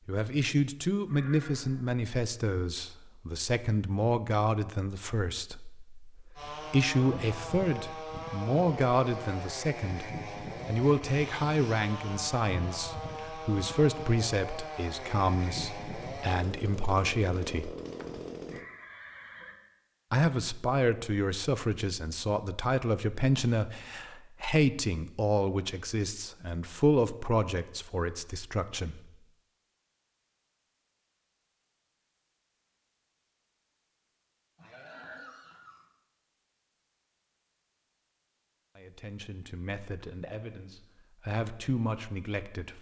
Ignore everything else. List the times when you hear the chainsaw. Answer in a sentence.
You can hear the chainsaw from 6.3 to 18.6 s.